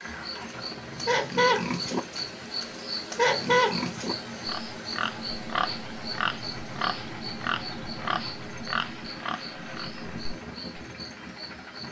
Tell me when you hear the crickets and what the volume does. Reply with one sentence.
The crickets can be heard from 0.0 to 11.8 s, getting quieter.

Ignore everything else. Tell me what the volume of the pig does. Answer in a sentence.
The loudness of the pig goes down.